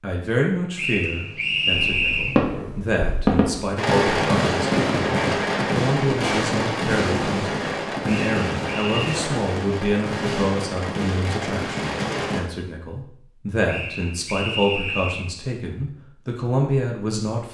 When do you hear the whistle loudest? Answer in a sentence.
The volume of the whistle peaks at 2 seconds.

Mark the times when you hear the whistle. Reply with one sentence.
You can hear the whistle from 0.8 to 2.4 s, from 8.1 to 9.2 s and from 13.7 to 15.3 s.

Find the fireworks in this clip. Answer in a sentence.
The fireworks can be heard from 1.7 to 12.4 s.